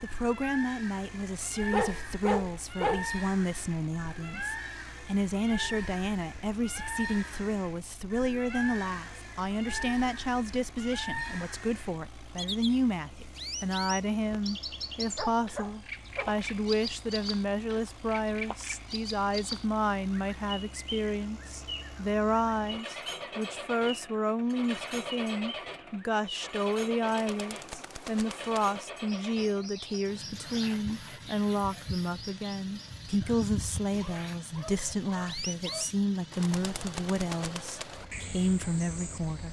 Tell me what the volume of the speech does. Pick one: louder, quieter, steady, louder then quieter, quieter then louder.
steady.